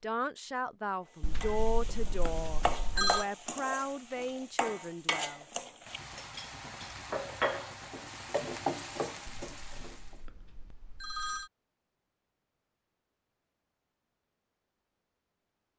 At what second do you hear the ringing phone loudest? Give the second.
3 s.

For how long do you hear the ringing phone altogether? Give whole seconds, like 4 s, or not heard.
4 s.